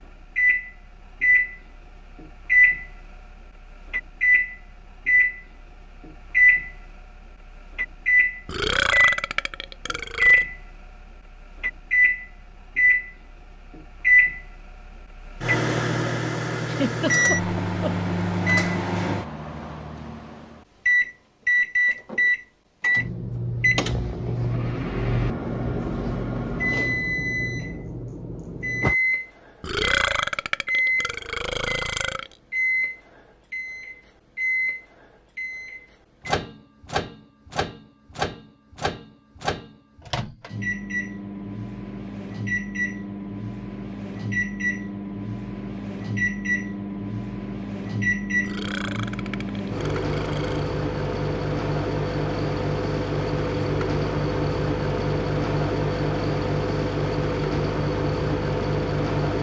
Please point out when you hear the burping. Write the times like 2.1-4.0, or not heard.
8.4-10.4, 29.6-32.3, 48.4-50.7.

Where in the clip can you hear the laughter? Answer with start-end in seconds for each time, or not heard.
16.6-18.1.